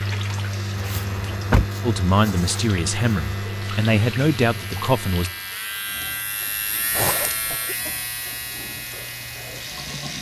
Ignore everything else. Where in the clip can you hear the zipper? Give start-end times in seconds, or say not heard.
0.8-3.2, 6.9-7.5.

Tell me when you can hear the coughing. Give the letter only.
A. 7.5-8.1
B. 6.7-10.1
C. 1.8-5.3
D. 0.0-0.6
A.